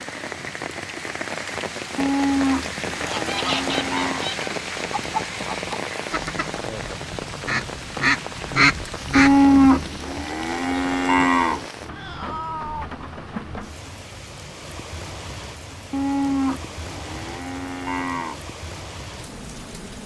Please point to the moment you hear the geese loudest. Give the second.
9 s.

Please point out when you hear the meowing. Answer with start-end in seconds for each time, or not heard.
11.8-13.7.